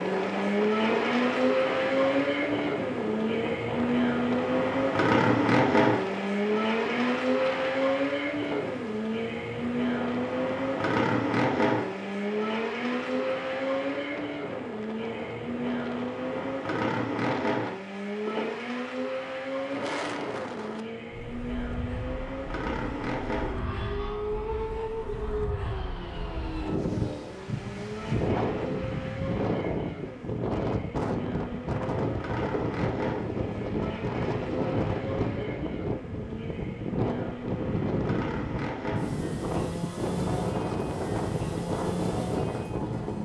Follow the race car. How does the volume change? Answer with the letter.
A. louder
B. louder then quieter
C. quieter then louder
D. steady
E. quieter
E.